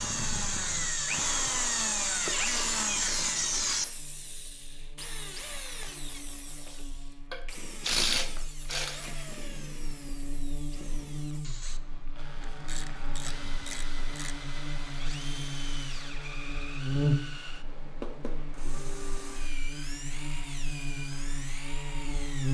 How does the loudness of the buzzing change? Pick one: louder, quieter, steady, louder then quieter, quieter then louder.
louder then quieter.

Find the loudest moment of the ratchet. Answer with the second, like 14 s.
8 s.